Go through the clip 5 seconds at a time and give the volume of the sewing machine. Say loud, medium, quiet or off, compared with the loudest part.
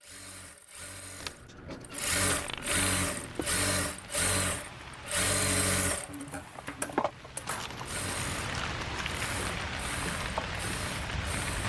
loud, loud, medium.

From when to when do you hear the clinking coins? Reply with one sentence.
The clinking coins can be heard from 2.3 to 2.9 s and from 7.5 to 9.2 s.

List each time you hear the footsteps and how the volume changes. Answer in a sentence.
The footsteps can't be heard in this clip.